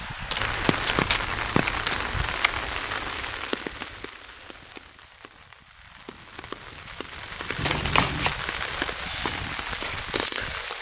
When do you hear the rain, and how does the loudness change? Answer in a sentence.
The rain can be heard from 0.0 to 10.7 s, getting quieter then louder.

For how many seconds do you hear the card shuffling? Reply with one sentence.
The card shuffling can be heard for 3 seconds in total.